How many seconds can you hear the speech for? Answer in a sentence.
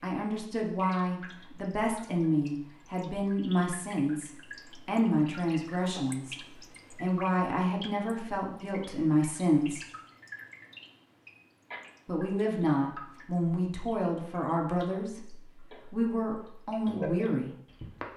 The speech can be heard for 15 seconds in total.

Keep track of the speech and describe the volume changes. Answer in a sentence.
The loudness of the speech stays about the same.